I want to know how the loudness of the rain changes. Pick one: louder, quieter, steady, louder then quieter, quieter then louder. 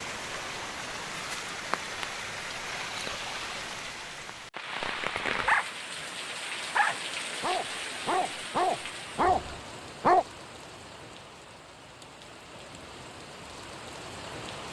quieter.